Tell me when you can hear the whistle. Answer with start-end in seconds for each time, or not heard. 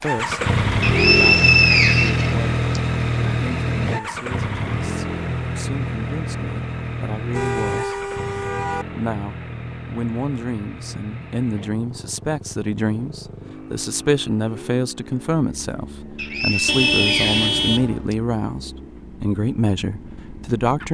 0.8-2.8, 16.1-18.1.